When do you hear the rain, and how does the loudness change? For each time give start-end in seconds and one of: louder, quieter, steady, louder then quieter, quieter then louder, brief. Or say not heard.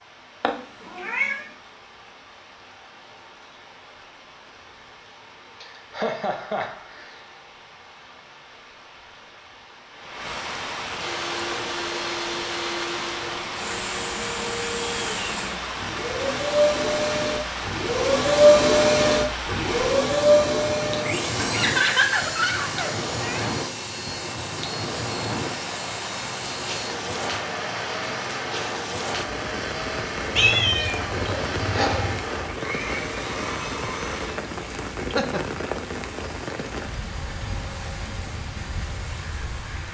0.0-39.8 louder.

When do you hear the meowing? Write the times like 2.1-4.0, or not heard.
0.4-1.4, 30.3-32.2.